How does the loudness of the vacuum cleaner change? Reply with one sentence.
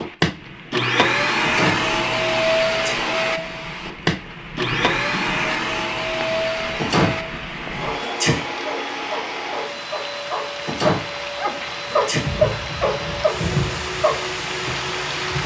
The loudness of the vacuum cleaner goes down.